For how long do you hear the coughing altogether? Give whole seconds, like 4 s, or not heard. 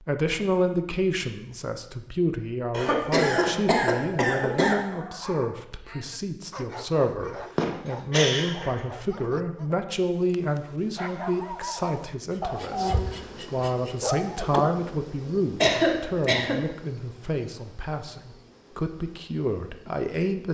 4 s.